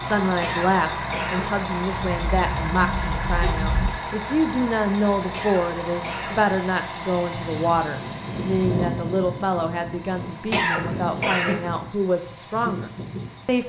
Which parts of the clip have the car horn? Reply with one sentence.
The car horn can be heard from 1.9 to 3.9 s.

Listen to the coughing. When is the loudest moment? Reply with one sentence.
The loudest moment of the coughing is at 11 seconds.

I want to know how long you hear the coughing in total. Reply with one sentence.
You can hear the coughing for 3 seconds altogether.